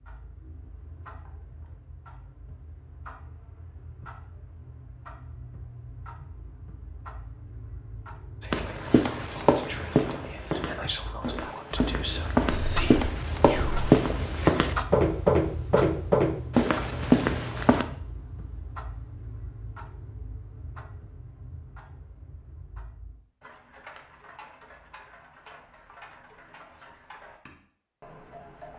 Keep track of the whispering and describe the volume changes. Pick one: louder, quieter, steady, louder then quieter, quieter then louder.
louder.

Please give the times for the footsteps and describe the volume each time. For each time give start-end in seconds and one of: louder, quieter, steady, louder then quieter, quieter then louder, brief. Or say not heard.
8.5-17.9 quieter then louder.